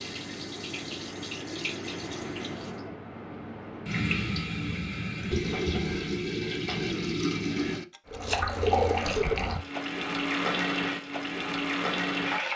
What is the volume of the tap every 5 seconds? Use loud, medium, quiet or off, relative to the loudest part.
medium, loud, loud.